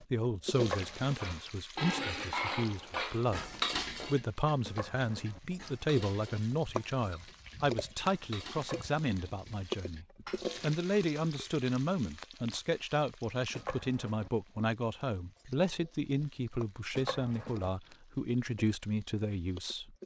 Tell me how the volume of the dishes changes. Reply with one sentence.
The loudness of the dishes goes down.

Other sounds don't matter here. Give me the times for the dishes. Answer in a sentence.
You can hear the dishes from 1.1 to 11.6 s.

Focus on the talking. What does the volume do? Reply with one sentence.
The volume of the talking stays about the same.